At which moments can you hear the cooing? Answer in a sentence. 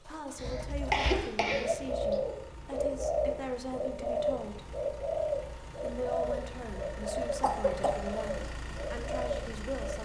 You can hear the cooing from 0.3 to 9.9 s.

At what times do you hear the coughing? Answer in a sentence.
The coughing can be heard from 0.3 to 2.1 s and from 7.3 to 8.0 s.